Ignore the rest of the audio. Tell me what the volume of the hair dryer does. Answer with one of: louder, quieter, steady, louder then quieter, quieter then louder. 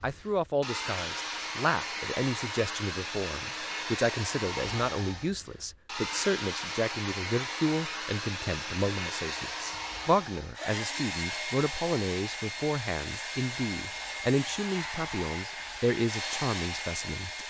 steady.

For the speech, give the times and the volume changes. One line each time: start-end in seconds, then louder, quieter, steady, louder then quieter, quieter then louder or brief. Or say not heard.
0.0-17.4 steady.